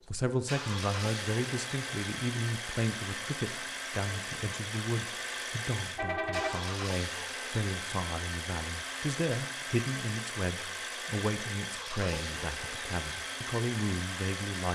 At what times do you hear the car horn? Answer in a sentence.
The car horn can be heard from 6.0 to 6.8 s.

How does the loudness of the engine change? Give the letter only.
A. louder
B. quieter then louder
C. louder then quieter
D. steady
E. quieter
D.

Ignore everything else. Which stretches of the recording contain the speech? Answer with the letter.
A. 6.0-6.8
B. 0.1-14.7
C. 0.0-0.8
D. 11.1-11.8
B.